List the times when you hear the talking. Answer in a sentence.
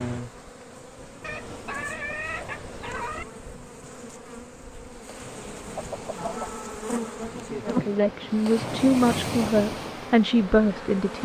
The talking can be heard from 7.7 to 11.2 s.